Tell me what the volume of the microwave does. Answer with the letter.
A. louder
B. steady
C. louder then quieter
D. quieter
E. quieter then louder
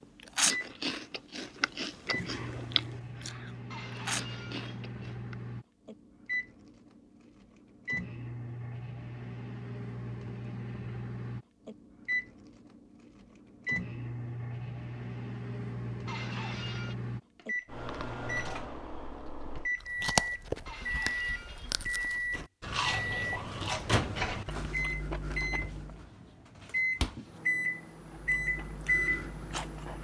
A.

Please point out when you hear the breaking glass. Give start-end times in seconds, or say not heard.
3.7-5.1, 16.1-16.9, 20.6-22.1.